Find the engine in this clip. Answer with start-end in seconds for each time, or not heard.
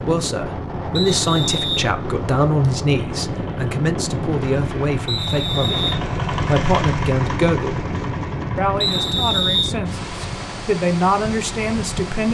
2.9-12.2.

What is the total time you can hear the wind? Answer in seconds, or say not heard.
12 s.